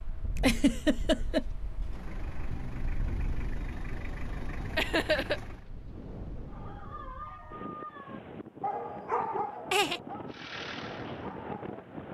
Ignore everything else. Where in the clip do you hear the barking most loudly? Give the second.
9 s.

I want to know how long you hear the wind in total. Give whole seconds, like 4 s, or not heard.
12 s.